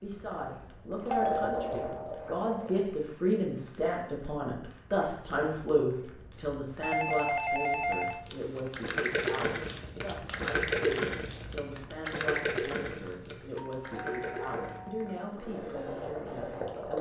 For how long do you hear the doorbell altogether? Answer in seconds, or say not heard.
4 s.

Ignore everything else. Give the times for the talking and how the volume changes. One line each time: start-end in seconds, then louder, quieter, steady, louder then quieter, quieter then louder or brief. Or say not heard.
0.0-16.9 quieter.